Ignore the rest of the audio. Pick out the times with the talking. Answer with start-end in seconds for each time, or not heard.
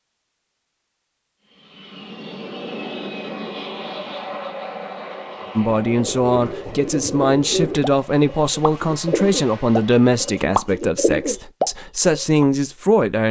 5.5-13.2.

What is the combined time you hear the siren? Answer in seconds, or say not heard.
not heard.